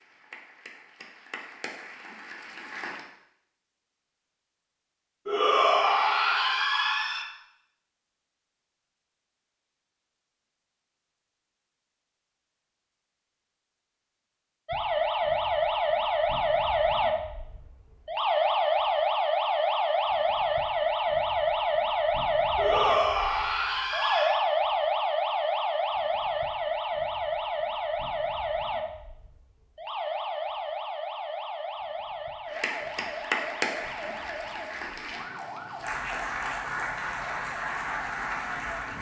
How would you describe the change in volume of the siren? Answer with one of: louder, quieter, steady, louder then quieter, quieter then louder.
quieter.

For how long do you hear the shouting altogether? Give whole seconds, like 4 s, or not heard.
4 s.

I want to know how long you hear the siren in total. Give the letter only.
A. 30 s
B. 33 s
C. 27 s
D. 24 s
D.